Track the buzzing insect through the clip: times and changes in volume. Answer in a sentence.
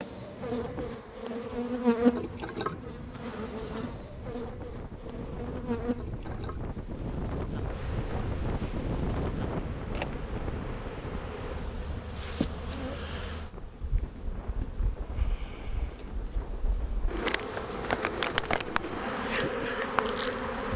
The buzzing insect can be heard from 0.0 to 20.7 s, getting quieter then louder.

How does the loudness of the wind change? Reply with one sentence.
The loudness of the wind goes up, then down.